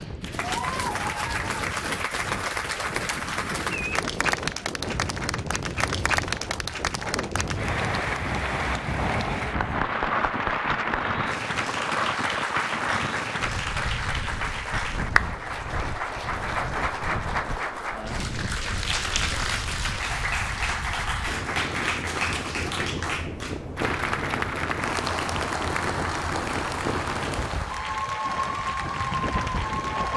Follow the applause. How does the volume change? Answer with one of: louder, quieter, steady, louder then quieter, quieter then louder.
steady.